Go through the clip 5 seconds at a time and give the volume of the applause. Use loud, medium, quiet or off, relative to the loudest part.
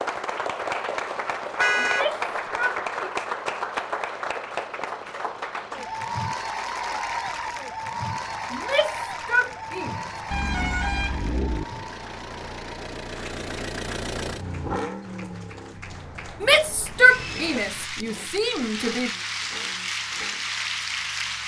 loud, loud, medium, medium, loud.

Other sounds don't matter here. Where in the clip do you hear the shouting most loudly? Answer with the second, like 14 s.
17 s.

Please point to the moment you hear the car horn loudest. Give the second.
2 s.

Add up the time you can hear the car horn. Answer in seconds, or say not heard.
4 s.